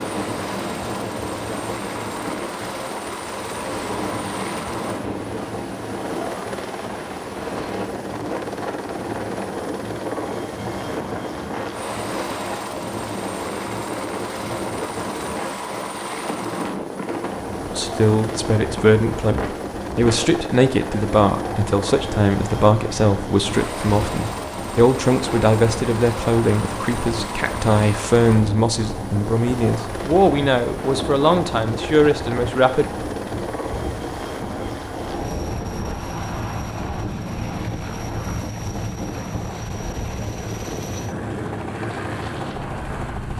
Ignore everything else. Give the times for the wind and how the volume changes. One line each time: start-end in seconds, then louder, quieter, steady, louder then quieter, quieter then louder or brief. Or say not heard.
0.0-43.3 steady.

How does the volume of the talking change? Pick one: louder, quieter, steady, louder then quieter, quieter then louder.
steady.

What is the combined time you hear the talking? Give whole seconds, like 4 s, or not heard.
15 s.